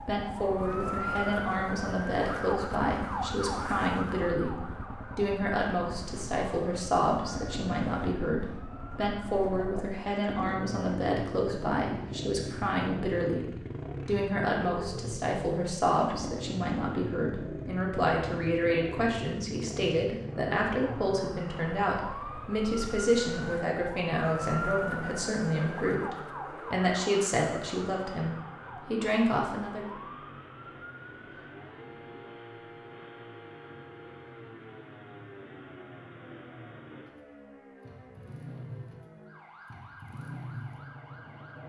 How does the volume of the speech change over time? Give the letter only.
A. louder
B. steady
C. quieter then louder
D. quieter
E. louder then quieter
B.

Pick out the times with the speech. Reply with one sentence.
You can hear the speech from 0.0 to 29.9 s.